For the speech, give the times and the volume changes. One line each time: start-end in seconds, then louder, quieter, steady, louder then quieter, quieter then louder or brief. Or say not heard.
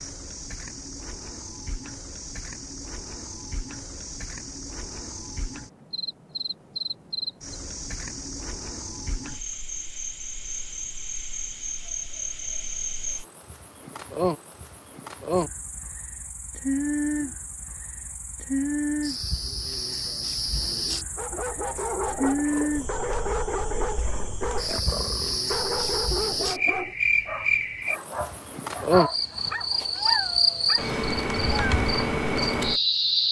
not heard.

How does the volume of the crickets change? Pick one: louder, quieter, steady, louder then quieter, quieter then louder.
louder.